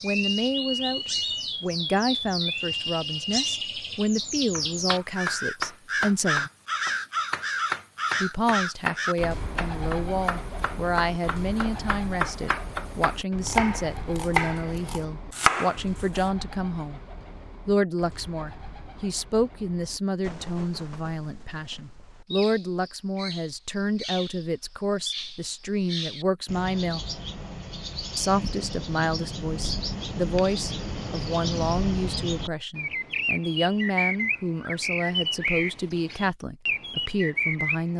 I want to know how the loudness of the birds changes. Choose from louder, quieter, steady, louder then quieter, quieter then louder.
quieter then louder.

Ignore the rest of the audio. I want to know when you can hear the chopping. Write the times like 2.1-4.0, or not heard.
4.5-15.8.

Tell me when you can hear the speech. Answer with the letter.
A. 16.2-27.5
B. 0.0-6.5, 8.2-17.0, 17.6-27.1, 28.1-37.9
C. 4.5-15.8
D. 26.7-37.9
B.